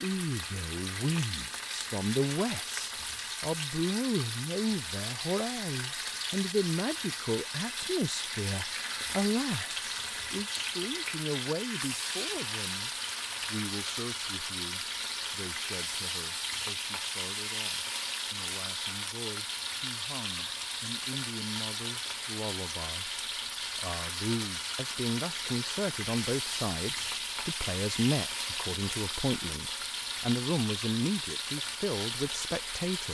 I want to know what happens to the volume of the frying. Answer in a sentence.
The volume of the frying stays about the same.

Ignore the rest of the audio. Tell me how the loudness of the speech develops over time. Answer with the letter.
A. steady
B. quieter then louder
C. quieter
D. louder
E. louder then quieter
B.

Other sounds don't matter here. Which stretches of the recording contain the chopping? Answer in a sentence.
You can't hear the chopping here.